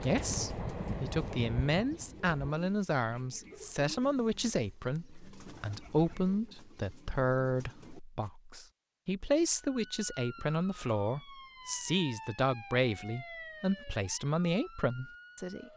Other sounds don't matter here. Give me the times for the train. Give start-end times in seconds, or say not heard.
0.0-2.5.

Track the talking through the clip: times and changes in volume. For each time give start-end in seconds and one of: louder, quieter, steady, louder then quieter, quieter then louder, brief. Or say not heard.
0.0-15.7 steady.